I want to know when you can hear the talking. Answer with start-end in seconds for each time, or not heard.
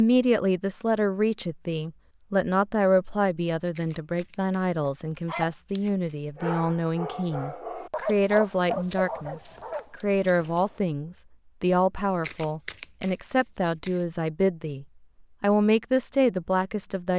0.0-17.1.